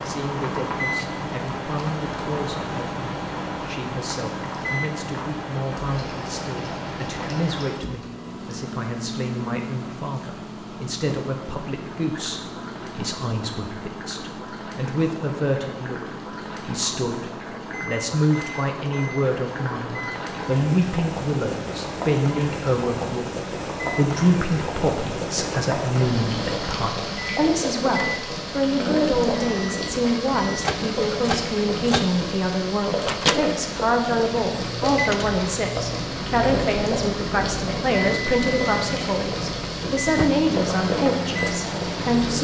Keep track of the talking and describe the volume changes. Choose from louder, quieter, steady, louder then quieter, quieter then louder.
louder.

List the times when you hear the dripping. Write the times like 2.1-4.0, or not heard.
not heard.